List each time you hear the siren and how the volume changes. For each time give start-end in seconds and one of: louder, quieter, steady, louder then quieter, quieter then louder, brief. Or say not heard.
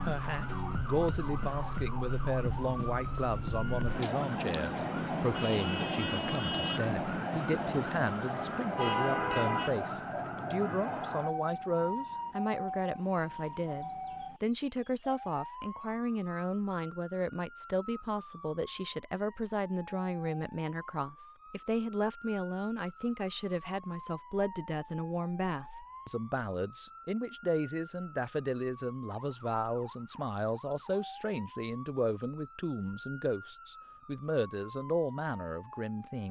0.0-36.2 quieter.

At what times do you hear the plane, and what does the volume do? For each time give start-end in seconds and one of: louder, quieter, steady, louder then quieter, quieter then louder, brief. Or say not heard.
not heard.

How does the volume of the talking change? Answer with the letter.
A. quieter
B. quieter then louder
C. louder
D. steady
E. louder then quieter
D.